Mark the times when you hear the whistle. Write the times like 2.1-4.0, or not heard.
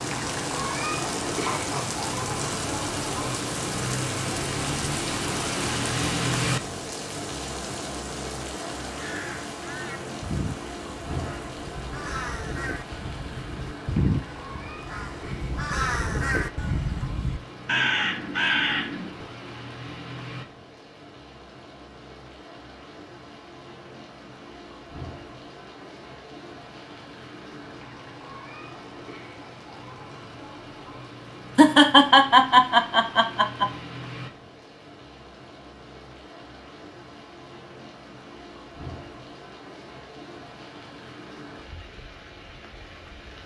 not heard.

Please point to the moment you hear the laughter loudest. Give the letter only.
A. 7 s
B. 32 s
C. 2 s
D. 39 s
B.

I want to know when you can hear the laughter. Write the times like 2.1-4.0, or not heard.
1.4-1.9, 31.6-33.7.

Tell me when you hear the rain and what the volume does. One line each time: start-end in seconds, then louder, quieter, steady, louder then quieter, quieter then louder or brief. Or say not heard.
0.0-43.4 quieter.